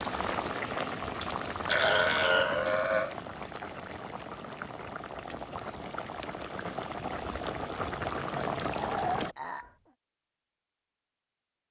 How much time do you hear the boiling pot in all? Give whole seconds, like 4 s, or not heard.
9 s.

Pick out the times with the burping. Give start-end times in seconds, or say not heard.
1.2-3.1, 8.8-9.7.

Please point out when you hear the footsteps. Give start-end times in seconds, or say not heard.
not heard.